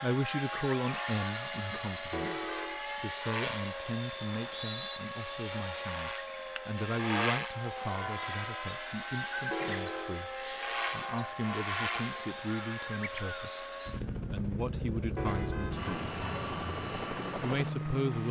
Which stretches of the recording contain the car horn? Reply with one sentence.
You can hear the car horn from 2.1 to 2.8 s, from 9.5 to 10.2 s and from 15.2 to 16.1 s.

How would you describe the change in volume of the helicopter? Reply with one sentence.
The loudness of the helicopter stays about the same.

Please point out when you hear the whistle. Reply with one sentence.
You can hear the whistle from 4.2 to 5.0 s.